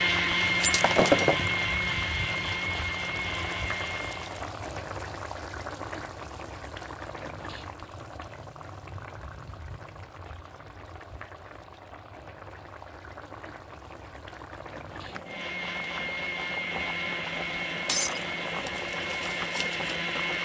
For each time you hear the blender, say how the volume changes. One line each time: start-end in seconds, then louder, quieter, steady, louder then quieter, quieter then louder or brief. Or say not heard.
0.0-4.5 quieter
15.1-20.3 steady.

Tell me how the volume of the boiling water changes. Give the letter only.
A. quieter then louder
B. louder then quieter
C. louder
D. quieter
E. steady
A.